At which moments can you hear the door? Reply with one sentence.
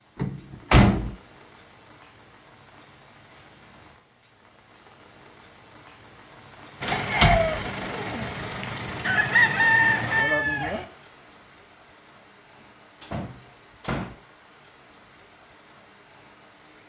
The door can be heard from 0.1 to 1.1 s, from 6.8 to 7.6 s and from 13.0 to 14.2 s.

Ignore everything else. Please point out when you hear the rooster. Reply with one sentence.
You can hear the rooster from 6.9 to 10.8 s.